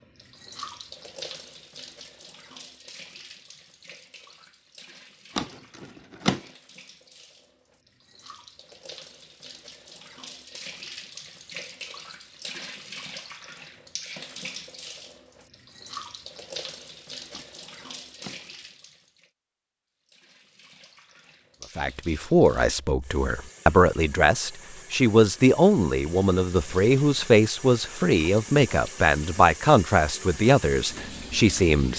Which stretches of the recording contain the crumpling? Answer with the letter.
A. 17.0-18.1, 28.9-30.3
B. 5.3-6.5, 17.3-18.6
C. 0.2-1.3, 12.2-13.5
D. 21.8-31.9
B.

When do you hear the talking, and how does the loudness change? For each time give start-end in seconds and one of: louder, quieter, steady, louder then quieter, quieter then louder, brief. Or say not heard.
21.8-31.9 steady.